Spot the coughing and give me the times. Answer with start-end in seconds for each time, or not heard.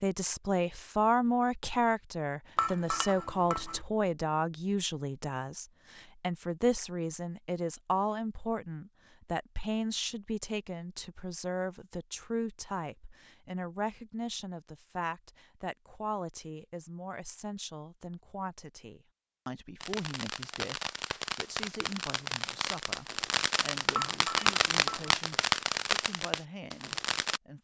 not heard.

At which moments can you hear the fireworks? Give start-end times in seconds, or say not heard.
19.8-27.4.